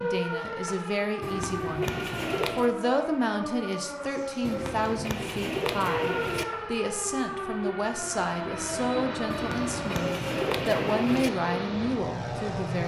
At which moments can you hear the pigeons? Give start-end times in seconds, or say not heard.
1.2-2.7, 4.4-6.5, 9.3-11.3.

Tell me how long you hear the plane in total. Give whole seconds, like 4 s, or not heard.
6 s.